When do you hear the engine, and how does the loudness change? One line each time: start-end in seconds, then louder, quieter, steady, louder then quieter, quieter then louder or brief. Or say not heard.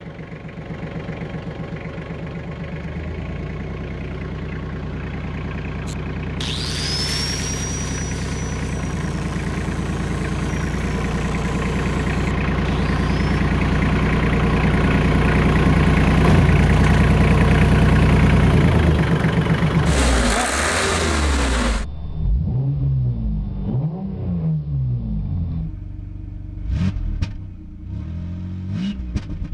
0.0-29.4 louder then quieter.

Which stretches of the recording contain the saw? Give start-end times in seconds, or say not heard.
5.8-13.2.